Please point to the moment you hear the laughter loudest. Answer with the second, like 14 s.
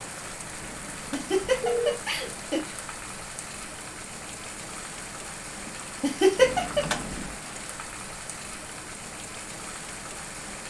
6 s.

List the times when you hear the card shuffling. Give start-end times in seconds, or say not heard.
not heard.